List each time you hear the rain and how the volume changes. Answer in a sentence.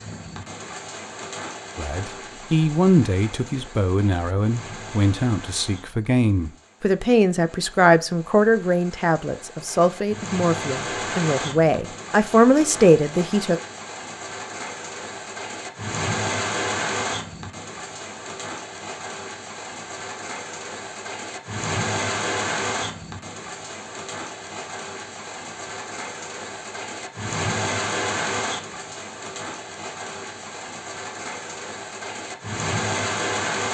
You can hear the rain from 0.0 to 33.6 s, getting louder.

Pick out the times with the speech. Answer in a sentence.
The speech can be heard from 1.8 to 13.6 s.